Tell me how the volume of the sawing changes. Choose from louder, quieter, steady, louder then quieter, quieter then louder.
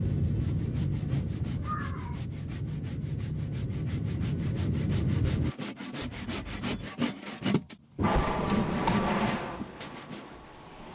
quieter then louder.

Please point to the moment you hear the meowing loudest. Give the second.
2 s.